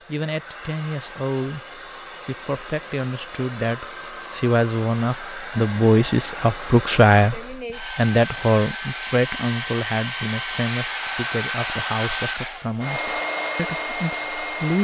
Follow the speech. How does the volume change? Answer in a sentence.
The volume of the speech goes up, then down.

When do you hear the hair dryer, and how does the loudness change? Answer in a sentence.
You can hear the hair dryer from 0.0 to 14.7 s, getting louder.